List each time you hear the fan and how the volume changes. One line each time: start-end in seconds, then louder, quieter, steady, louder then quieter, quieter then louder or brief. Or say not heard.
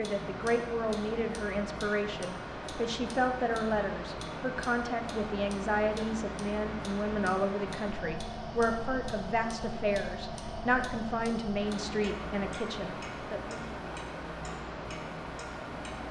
0.0-16.0 steady.